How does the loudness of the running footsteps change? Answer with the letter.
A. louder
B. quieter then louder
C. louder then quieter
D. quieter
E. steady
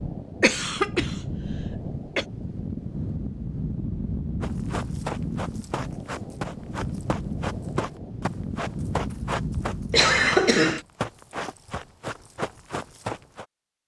E.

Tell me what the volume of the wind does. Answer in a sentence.
The volume of the wind stays about the same.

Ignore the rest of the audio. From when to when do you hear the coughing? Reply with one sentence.
The coughing can be heard from 0.4 to 2.2 s and from 9.9 to 10.8 s.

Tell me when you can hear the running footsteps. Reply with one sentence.
The running footsteps can be heard from 4.4 to 13.4 s.